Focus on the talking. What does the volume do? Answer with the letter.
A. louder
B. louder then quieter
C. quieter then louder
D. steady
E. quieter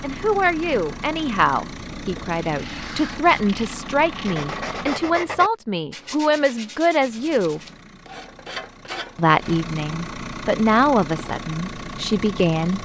D.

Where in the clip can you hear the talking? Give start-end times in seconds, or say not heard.
0.0-7.6, 9.2-12.8.